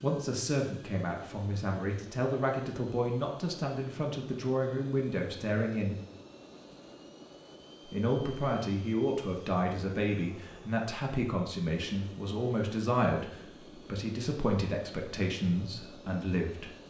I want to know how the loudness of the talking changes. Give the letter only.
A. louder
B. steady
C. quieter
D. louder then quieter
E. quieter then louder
B.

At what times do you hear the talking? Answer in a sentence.
You can hear the talking from 0.0 to 6.0 s and from 7.8 to 16.8 s.